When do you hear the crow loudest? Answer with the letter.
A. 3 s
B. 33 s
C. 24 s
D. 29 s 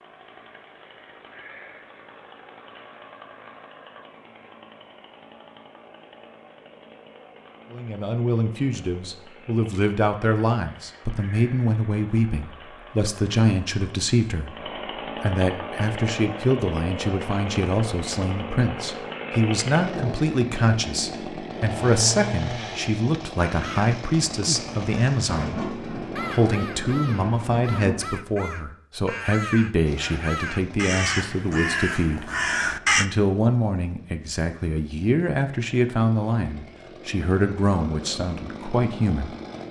B.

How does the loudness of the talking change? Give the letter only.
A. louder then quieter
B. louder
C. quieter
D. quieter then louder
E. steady
E.